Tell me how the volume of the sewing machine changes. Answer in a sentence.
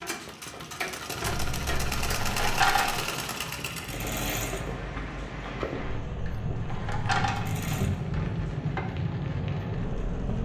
The volume of the sewing machine goes down.